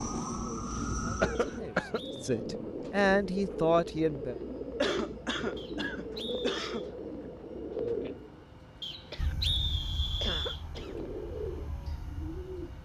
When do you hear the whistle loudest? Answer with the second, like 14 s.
10 s.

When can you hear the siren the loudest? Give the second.
1 s.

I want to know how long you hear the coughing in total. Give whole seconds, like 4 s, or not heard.
5 s.